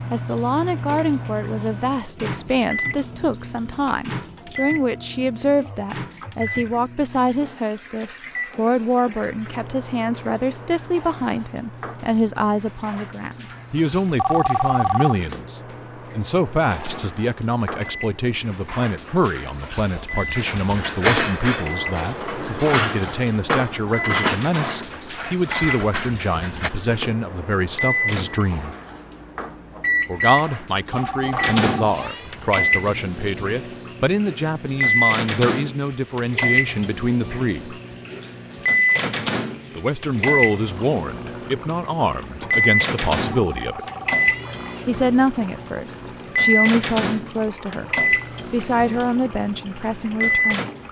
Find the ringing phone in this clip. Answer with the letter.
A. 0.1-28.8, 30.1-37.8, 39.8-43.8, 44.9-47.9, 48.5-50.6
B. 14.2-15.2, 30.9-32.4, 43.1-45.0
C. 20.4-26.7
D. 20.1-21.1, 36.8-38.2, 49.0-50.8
B.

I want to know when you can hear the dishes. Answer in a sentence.
You can hear the dishes from 20.4 to 26.7 s.